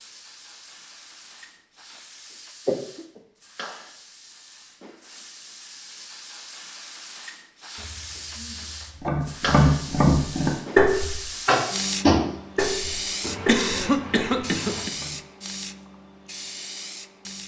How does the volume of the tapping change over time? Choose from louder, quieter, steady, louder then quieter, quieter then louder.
quieter.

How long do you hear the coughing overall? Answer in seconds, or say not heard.
4 s.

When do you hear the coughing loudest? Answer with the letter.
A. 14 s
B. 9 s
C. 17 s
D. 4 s
A.